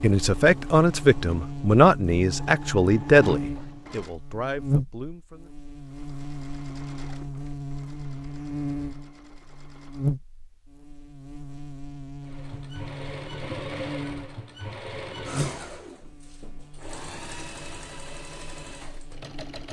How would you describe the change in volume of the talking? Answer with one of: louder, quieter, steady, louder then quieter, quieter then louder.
quieter.